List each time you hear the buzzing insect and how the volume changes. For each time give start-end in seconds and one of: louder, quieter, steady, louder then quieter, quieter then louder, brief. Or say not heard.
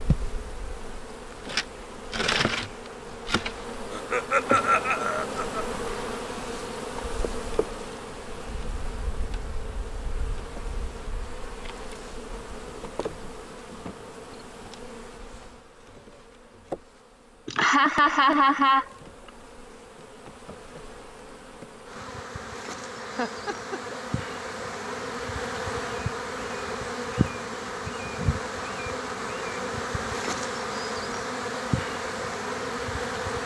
0.0-33.4 quieter then louder.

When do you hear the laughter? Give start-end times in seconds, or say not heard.
3.9-5.7, 17.4-18.9, 22.9-24.4.